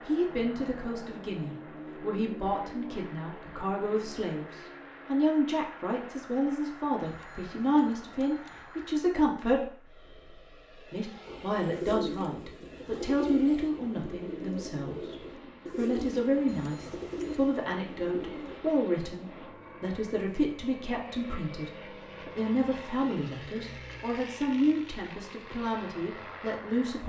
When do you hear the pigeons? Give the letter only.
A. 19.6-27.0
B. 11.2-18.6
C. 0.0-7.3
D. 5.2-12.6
B.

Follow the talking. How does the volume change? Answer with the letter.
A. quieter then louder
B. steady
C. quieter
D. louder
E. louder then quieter
B.